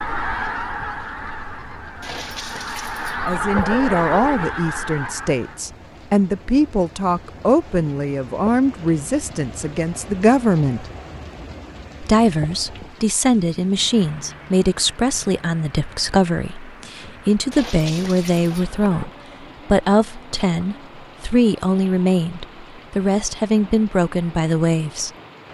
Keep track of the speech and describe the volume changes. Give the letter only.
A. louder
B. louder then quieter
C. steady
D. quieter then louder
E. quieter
C.